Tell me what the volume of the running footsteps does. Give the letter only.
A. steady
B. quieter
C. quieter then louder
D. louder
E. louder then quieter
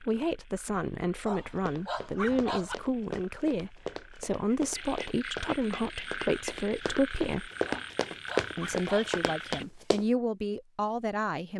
D.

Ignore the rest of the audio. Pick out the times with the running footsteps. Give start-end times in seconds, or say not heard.
1.6-10.1.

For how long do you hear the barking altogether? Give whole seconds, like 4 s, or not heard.
3 s.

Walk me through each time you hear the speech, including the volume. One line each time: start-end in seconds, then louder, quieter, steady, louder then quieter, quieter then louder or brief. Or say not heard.
0.0-7.5 steady
8.6-11.5 brief.